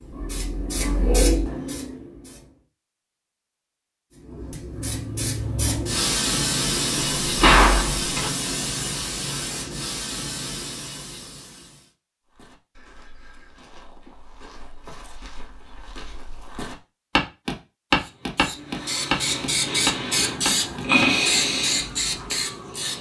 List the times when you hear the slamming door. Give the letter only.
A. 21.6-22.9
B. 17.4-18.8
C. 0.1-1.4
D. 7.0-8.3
D.